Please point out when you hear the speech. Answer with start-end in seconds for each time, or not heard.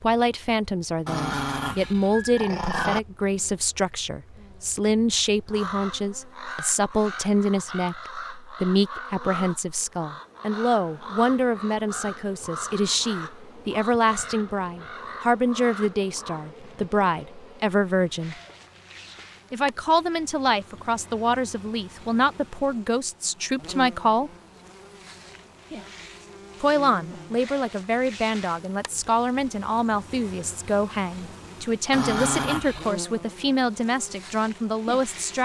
0.0-18.4, 19.5-24.3, 26.6-35.4.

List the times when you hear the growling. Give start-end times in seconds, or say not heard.
1.1-3.0, 31.9-33.0.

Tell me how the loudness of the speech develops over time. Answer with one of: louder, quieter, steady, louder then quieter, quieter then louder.
steady.